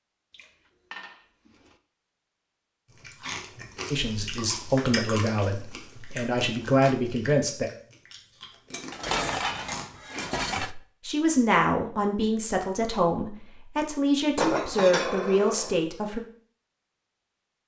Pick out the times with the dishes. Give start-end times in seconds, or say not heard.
0.3-1.8, 4.8-7.1, 8.9-10.8, 14.3-15.8.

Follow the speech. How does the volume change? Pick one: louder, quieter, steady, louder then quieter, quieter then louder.
steady.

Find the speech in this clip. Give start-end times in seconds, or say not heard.
3.9-7.7, 10.6-16.2.